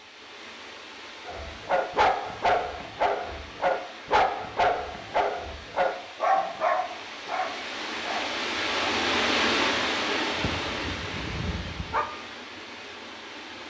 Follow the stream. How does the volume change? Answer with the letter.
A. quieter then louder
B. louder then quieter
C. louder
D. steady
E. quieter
B.